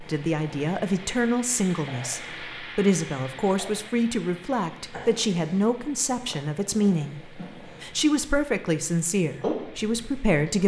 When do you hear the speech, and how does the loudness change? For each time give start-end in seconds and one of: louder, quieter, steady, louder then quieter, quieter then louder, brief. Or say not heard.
0.0-10.6 steady.